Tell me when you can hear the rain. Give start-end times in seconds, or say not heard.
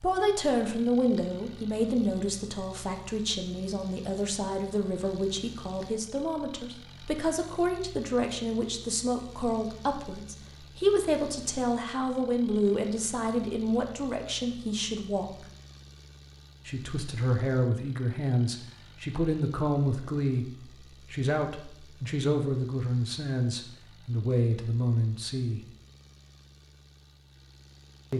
not heard.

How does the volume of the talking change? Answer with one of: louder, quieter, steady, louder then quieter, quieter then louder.
steady.